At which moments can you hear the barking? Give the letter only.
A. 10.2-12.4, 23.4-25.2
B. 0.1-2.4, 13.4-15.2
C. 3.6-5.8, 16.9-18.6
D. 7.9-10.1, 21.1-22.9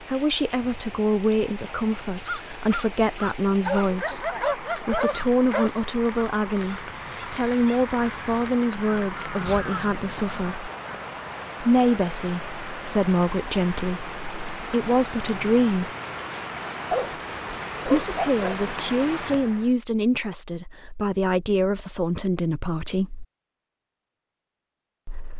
C.